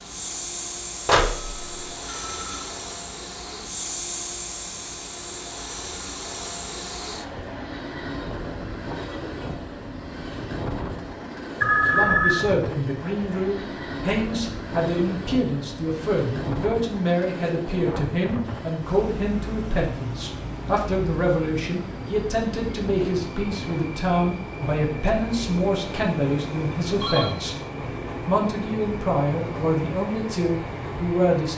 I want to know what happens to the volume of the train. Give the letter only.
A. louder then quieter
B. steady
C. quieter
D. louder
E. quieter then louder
B.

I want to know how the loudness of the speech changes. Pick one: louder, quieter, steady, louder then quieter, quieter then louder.
steady.